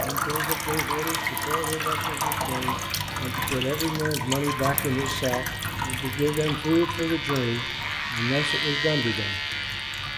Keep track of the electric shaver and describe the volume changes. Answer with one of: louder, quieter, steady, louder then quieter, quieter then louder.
louder.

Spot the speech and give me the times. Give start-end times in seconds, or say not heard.
0.0-9.4.